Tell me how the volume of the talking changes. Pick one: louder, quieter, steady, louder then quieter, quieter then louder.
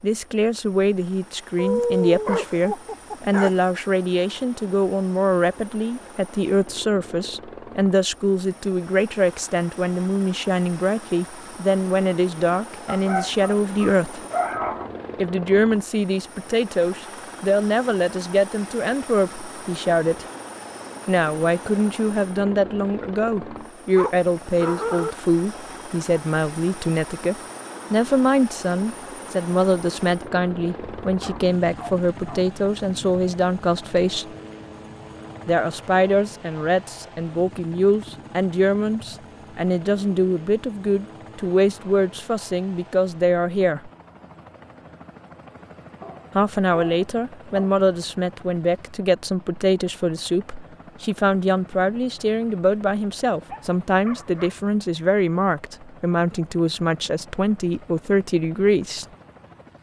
steady.